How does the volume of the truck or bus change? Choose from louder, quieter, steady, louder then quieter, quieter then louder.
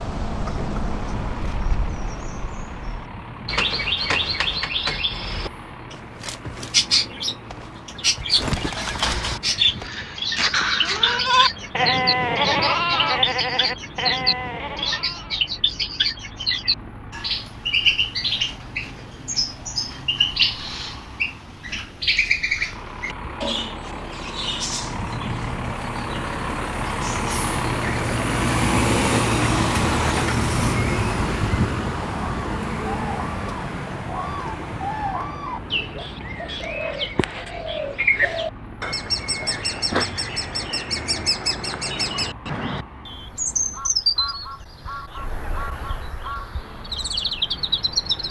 louder then quieter.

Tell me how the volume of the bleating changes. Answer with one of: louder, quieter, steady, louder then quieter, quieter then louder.
louder then quieter.